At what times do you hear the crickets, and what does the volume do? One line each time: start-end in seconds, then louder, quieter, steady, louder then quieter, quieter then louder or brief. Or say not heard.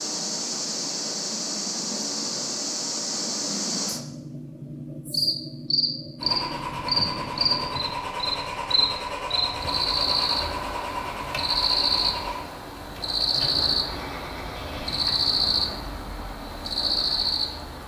0.0-17.8 steady.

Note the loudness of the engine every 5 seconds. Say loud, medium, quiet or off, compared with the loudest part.
off, loud, loud, quiet.